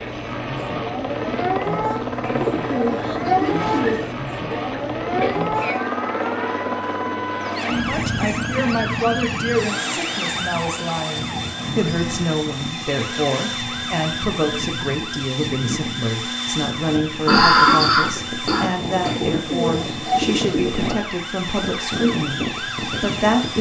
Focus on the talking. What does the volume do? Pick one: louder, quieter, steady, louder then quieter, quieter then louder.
steady.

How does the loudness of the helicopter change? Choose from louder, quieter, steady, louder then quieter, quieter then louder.
steady.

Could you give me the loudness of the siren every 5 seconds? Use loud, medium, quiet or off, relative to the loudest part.
loud, loud, medium, medium, medium.